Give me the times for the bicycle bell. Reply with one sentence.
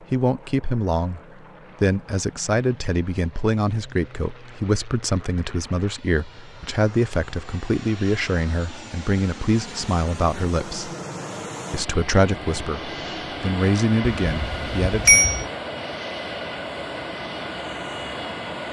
The bicycle bell can be heard from 14.2 to 15.4 s.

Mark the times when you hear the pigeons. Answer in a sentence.
You can't hear the pigeons here.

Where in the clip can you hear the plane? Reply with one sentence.
You can hear the plane from 0.0 to 18.6 s.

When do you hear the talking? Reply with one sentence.
The talking can be heard from 0.1 to 1.2 s, from 1.8 to 10.9 s and from 11.7 to 15.2 s.